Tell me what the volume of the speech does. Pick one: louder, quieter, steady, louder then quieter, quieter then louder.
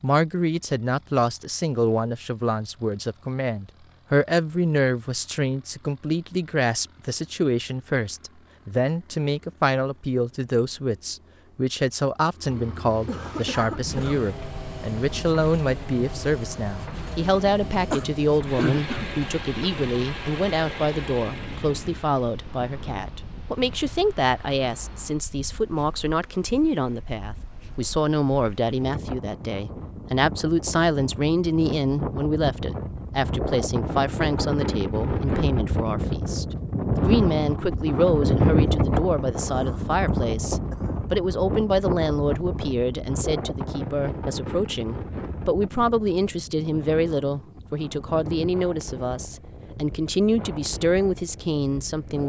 steady.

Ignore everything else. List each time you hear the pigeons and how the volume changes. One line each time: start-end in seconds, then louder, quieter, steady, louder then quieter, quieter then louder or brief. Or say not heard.
not heard.